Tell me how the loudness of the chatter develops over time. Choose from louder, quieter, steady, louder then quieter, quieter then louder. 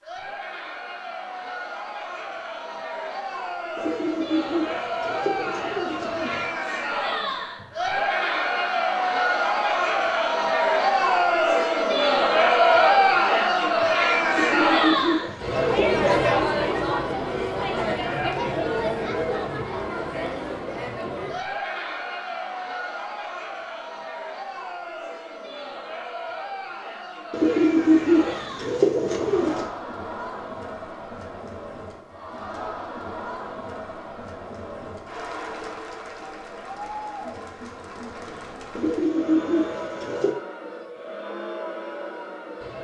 louder then quieter.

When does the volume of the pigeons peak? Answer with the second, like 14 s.
28 s.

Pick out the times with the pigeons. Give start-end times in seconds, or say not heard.
3.8-6.5, 14.3-16.1, 27.3-29.7, 38.8-40.4.